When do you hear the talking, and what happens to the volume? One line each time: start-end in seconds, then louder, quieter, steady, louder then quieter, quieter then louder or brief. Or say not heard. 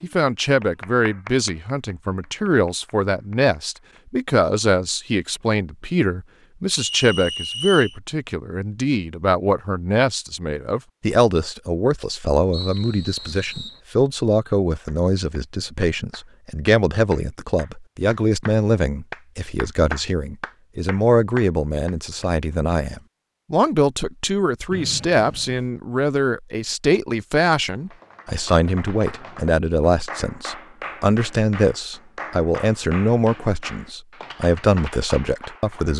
0.0-35.9 steady.